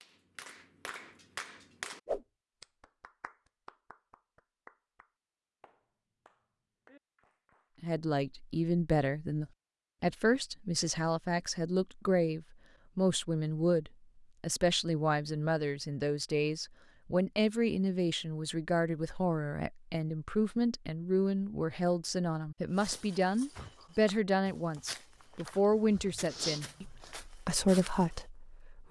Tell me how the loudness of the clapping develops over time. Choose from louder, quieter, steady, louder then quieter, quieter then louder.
louder then quieter.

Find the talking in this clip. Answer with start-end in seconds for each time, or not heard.
7.8-28.8.